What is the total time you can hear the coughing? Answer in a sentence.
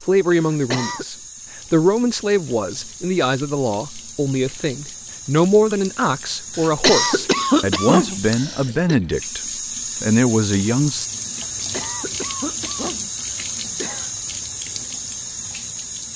You can hear the coughing for 6 seconds altogether.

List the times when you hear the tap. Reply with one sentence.
You can hear the tap from 0.0 to 16.1 s.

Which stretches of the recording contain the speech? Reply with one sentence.
You can hear the speech from 0.0 to 9.4 s and from 10.0 to 11.1 s.